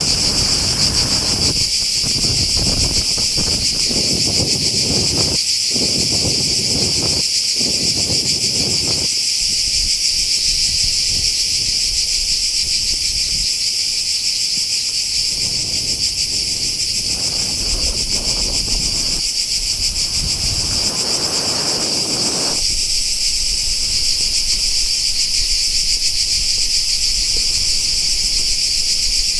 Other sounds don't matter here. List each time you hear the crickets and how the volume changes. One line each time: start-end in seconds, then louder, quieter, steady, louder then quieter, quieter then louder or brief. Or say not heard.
0.0-29.3 steady.